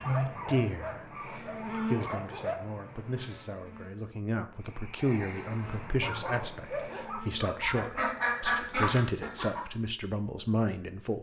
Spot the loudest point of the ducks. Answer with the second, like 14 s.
8 s.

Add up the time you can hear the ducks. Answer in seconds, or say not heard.
2 s.